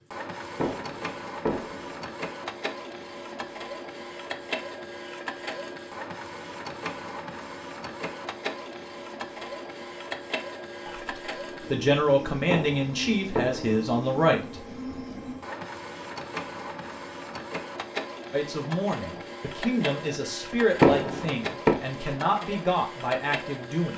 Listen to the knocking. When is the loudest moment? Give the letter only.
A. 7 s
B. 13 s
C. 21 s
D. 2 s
C.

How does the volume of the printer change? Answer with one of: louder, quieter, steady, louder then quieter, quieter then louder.
steady.